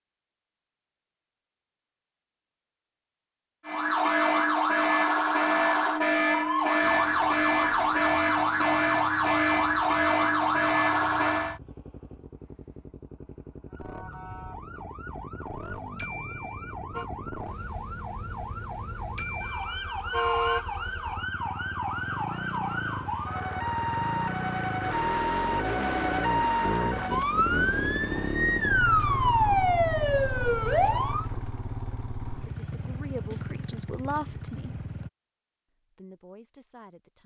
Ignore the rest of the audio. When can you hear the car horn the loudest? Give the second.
20 s.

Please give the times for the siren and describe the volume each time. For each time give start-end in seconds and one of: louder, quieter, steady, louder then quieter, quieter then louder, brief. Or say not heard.
3.6-11.6 steady
13.7-31.2 louder.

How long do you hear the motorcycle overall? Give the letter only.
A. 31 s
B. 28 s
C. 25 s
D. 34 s
B.